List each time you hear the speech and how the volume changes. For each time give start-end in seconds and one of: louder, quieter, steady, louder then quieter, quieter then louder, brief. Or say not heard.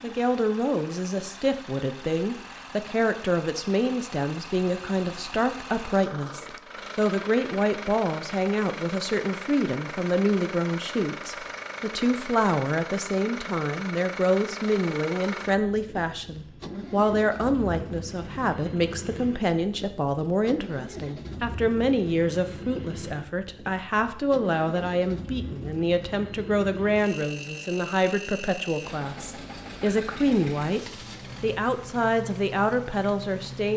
0.0-33.7 steady.